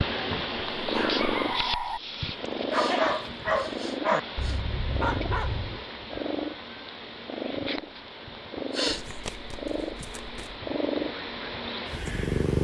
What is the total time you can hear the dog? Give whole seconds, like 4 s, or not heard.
5 s.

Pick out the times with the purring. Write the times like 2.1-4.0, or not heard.
0.0-12.5.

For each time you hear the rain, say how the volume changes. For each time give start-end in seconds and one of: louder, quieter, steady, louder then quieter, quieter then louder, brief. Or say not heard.
not heard.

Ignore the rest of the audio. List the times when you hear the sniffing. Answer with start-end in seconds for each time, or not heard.
2.6-4.6, 8.7-9.2.